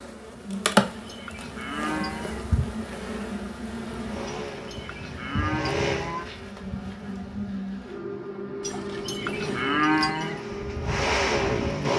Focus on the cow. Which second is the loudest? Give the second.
10 s.